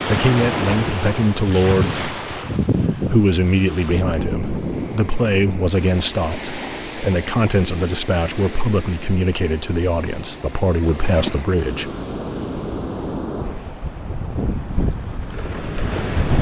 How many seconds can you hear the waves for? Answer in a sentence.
The waves can be heard for 16 seconds in total.